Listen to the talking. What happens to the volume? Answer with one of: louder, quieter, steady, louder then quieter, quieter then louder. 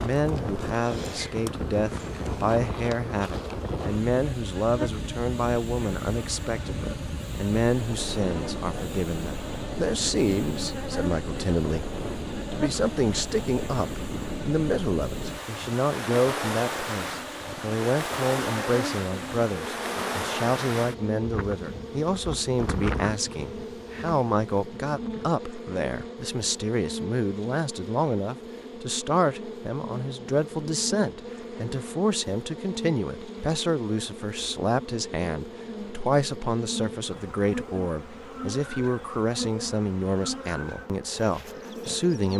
steady.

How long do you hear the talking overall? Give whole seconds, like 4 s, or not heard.
42 s.